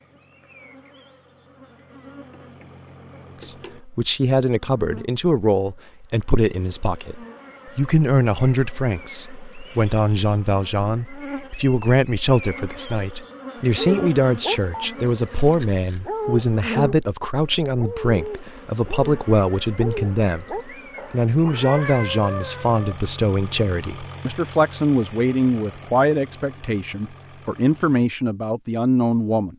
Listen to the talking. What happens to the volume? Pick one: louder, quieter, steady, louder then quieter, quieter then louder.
steady.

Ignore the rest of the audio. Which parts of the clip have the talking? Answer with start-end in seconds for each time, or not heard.
3.4-29.5.